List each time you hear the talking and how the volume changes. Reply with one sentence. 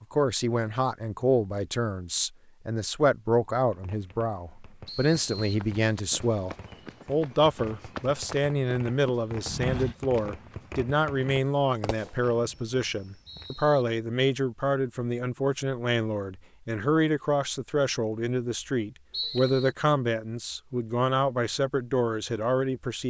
You can hear the talking from 0.0 to 23.0 s, at a steady volume.